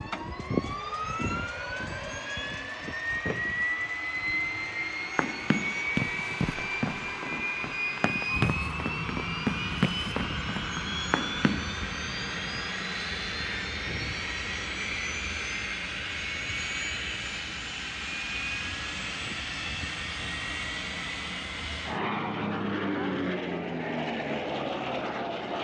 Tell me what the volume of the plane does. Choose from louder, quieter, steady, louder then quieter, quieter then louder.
steady.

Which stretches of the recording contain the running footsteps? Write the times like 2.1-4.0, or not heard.
5.2-11.7.